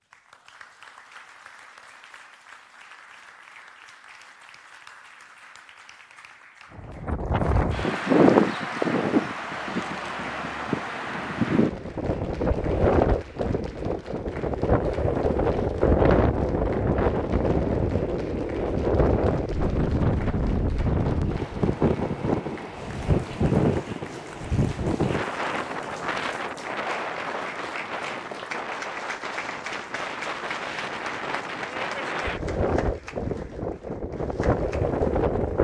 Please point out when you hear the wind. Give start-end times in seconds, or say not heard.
6.8-35.5.